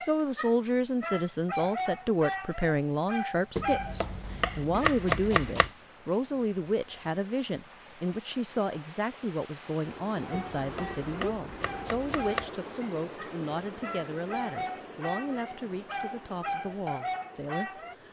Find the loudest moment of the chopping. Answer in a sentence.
The loudest moment of the chopping is at 5 seconds.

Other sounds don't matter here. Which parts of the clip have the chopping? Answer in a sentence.
You can hear the chopping from 3.5 to 5.7 s and from 10.3 to 12.5 s.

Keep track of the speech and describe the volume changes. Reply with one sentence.
The volume of the speech goes down.